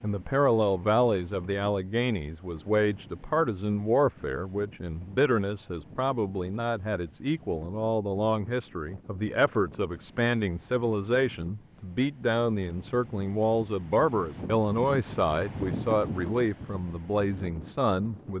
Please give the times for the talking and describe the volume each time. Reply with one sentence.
You can hear the talking from 0.0 to 18.3 s, at a steady volume.